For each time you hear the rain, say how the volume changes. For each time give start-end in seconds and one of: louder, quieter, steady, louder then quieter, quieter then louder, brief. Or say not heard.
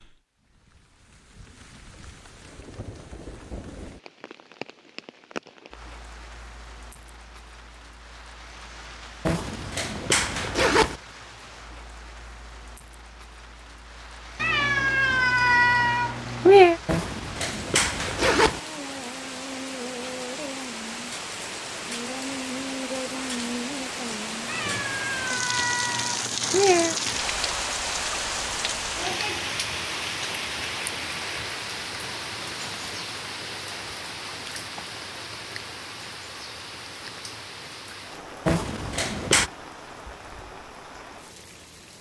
0.0-41.9 louder then quieter.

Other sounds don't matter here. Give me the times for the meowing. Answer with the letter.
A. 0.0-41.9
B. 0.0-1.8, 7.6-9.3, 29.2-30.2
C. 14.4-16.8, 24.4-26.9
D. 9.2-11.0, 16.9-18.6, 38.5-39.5
C.